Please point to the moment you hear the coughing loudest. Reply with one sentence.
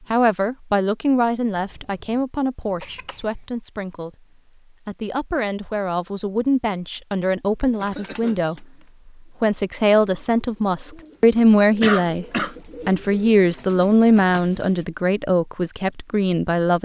The volume of the coughing peaks at 12 seconds.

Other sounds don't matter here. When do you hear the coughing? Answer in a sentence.
The coughing can be heard from 1.5 to 3.3 s, from 7.8 to 8.8 s and from 11.8 to 12.6 s.